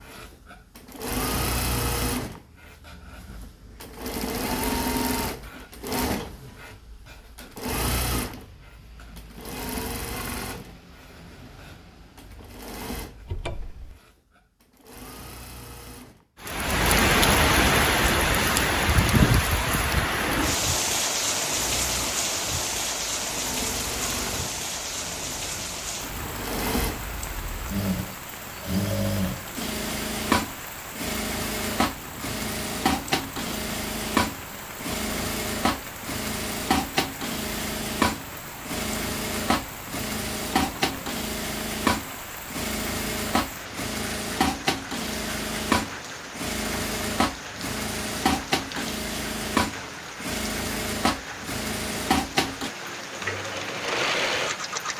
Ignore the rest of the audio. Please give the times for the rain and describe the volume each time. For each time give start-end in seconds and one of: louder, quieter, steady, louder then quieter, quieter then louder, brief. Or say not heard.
16.4-54.9 quieter.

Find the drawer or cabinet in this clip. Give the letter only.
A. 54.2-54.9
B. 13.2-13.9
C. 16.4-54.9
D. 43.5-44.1
B.